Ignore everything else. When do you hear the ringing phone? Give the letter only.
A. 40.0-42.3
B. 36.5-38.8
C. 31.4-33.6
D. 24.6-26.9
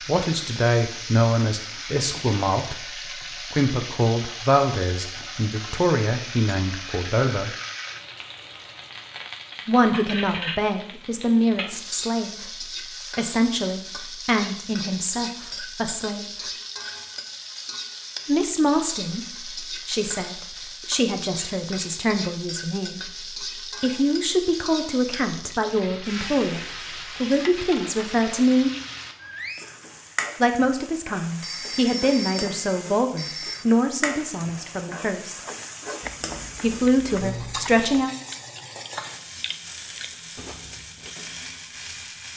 C.